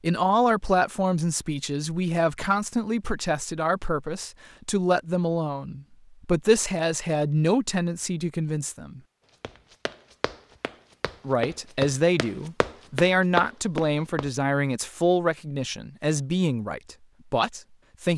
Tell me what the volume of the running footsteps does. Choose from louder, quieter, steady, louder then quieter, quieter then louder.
louder.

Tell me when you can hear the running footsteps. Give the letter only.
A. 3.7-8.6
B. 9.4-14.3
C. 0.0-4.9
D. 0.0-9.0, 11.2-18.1
B.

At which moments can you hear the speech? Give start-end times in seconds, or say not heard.
0.0-9.0, 11.2-18.1.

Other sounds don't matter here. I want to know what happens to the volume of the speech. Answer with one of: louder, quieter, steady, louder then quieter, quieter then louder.
steady.